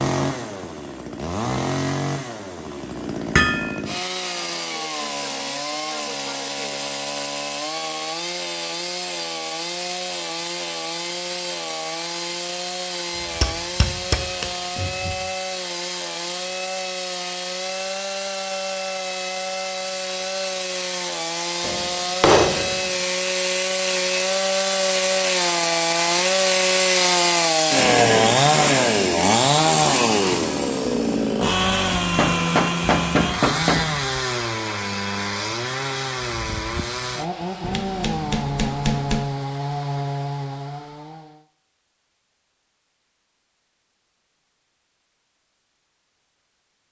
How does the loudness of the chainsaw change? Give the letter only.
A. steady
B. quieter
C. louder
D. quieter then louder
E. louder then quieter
E.